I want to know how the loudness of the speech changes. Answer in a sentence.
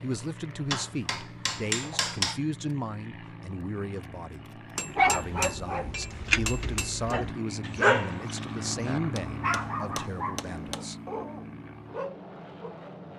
The loudness of the speech stays about the same.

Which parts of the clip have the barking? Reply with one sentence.
The barking can be heard from 4.8 to 12.8 s.